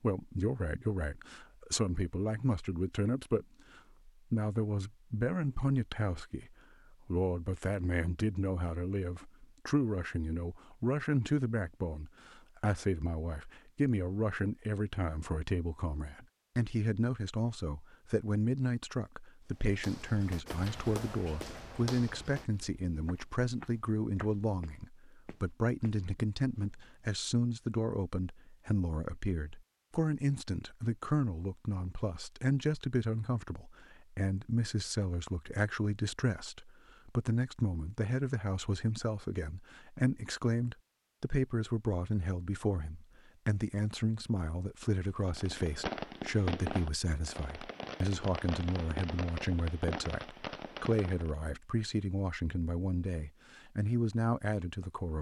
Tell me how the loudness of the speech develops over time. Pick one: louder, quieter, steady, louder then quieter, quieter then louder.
steady.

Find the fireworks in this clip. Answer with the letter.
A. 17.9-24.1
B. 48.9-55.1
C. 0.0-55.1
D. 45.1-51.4
D.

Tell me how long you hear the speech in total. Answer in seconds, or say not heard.
55 s.